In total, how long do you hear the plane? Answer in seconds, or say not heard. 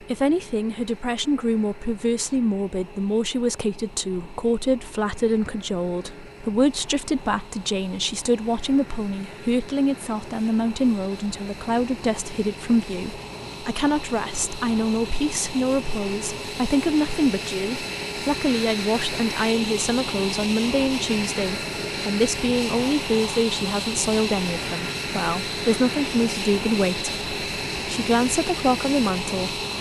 30 s.